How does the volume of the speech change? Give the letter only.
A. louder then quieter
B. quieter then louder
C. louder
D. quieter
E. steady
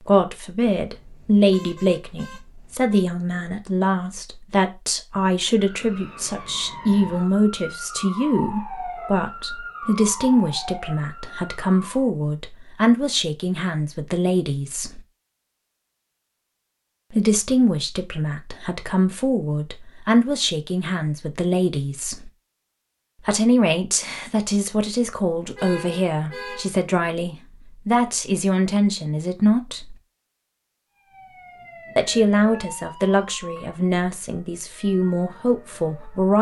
E.